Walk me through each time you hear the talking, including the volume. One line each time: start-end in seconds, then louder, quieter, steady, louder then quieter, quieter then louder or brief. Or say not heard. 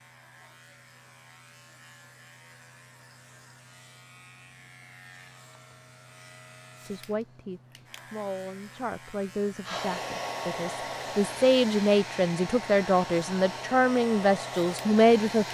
6.8-15.4 louder.